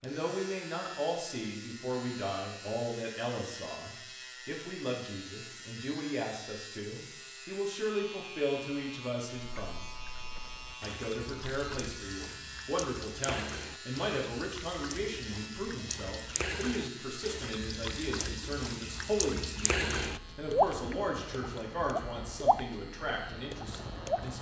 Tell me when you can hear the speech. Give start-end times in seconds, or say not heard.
0.0-10.0, 10.8-24.3.